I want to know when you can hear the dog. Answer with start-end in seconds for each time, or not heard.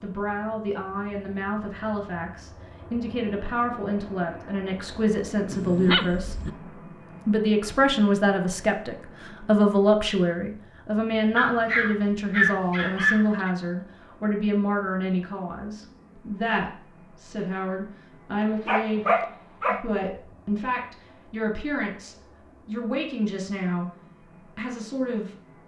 5.5-6.5, 11.3-13.5, 18.4-19.9.